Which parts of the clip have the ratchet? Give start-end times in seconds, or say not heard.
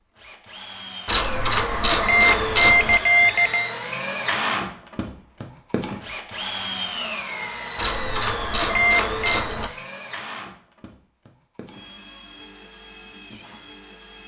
1.1-3.0, 7.8-9.7.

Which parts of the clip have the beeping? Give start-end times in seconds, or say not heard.
2.0-3.7, 8.7-9.4.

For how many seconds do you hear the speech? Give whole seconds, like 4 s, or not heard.
not heard.